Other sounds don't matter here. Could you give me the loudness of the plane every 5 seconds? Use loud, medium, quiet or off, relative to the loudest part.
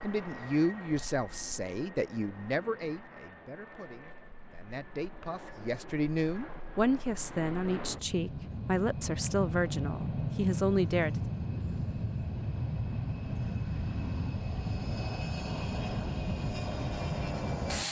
quiet, medium, loud, loud.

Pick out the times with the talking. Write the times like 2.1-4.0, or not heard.
0.0-11.2.